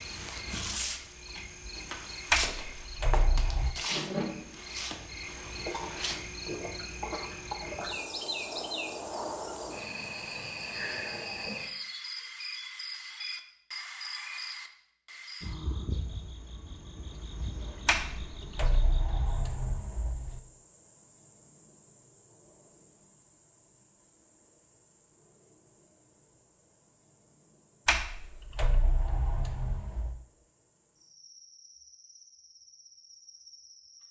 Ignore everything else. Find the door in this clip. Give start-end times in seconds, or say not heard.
2.3-3.8, 17.9-20.4, 27.9-30.2.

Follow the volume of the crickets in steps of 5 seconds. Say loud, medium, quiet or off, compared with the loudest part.
loud, loud, loud, medium, quiet, quiet, quiet.